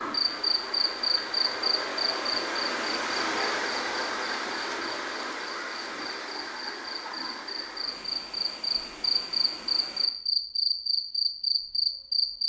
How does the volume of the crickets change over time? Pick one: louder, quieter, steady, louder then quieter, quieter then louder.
quieter then louder.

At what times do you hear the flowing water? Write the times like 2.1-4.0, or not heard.
0.0-10.1.